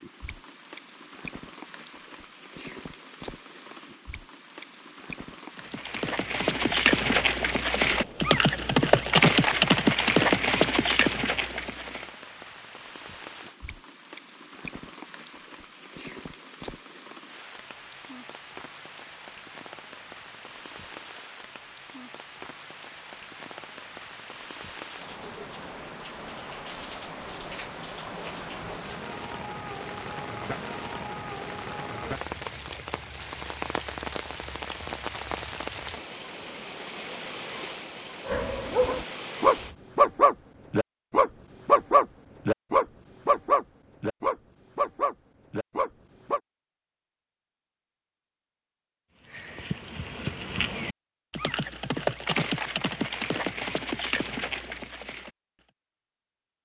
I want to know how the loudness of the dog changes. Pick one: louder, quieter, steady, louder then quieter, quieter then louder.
quieter.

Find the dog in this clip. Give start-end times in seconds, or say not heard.
38.2-46.4.